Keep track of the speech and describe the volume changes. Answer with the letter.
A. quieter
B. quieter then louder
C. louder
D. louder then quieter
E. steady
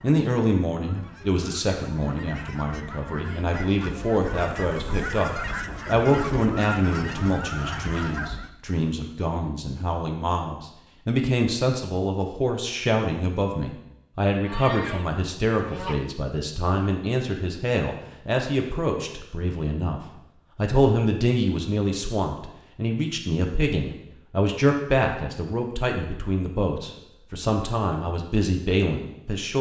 E.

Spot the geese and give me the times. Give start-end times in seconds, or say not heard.
0.0-8.5, 14.4-16.1.